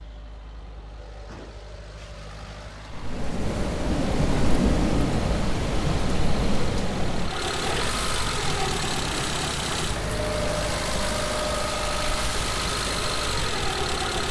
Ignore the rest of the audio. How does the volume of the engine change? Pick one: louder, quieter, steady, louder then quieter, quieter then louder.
louder.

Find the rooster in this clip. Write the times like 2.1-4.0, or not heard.
not heard.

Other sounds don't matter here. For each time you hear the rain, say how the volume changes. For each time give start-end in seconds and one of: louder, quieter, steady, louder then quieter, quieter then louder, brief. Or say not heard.
2.9-14.2 quieter.